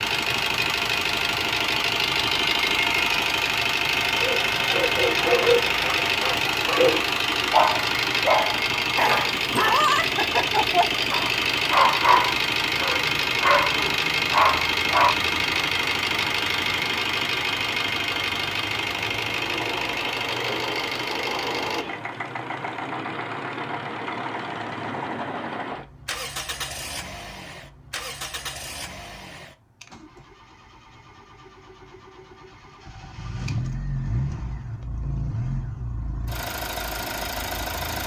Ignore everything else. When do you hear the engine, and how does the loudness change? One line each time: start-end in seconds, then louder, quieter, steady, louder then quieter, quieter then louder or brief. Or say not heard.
0.0-38.0 quieter.